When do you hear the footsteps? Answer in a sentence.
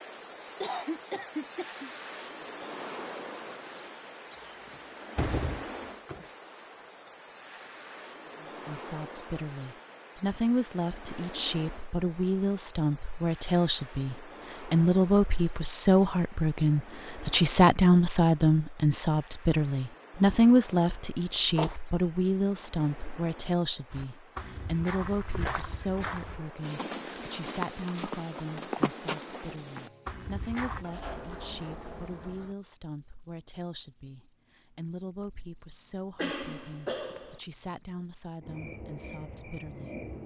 You can hear the footsteps from 23.9 to 30.9 s.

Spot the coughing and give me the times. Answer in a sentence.
You can hear the coughing from 0.6 to 1.9 s and from 36.1 to 37.4 s.